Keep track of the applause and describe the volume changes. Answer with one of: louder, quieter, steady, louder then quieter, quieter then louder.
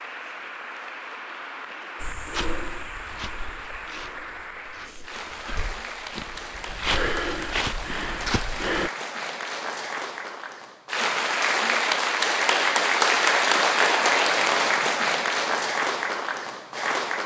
louder.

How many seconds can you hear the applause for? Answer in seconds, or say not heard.
17 s.